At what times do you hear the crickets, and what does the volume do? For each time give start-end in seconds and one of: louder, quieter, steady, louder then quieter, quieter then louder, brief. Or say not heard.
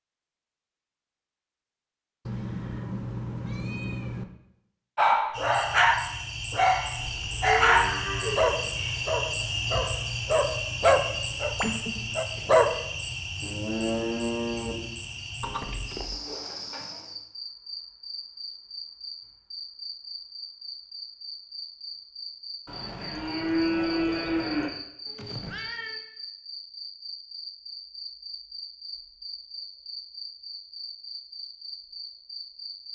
5.3-32.9 quieter.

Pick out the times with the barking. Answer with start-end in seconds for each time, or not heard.
5.0-12.7.